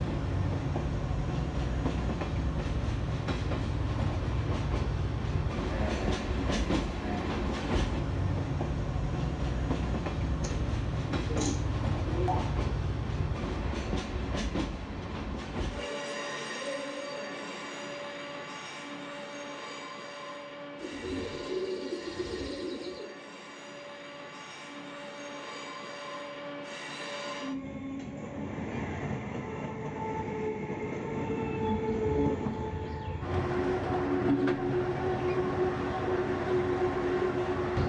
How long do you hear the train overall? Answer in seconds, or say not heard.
38 s.